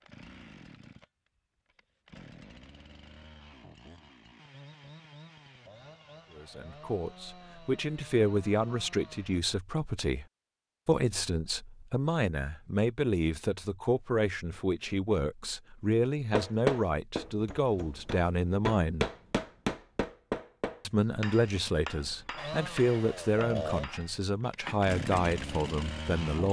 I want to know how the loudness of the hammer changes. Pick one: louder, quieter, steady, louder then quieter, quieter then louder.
louder then quieter.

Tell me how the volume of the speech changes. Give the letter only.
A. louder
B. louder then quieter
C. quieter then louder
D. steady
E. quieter
D.